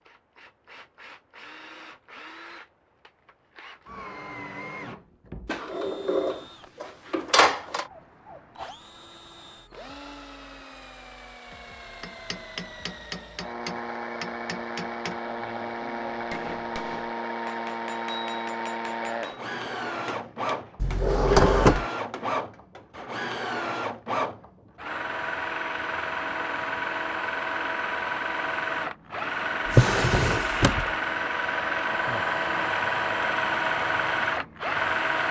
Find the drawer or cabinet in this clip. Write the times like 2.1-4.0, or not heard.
5.5-7.8, 20.8-21.9, 29.6-30.9.